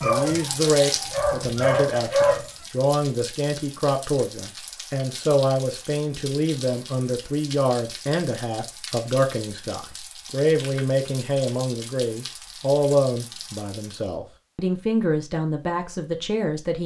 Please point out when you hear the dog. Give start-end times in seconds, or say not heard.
0.0-2.5.